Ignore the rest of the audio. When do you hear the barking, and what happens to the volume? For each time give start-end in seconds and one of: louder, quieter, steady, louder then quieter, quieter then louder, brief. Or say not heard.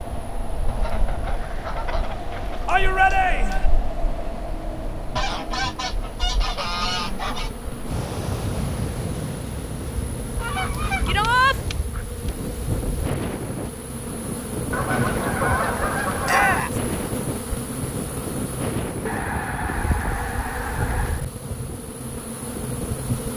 not heard.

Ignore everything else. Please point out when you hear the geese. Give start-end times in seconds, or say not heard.
0.7-2.7, 5.2-7.5, 10.3-12.3, 14.7-16.6, 19.1-21.2.